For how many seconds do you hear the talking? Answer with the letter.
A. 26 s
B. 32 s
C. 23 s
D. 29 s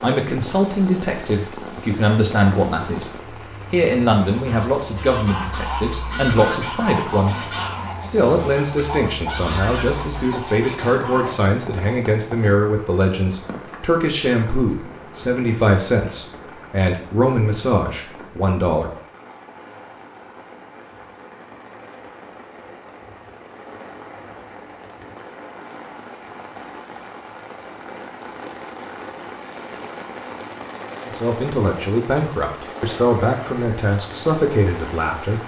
C.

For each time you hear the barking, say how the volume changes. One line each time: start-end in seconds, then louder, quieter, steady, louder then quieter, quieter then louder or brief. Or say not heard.
not heard.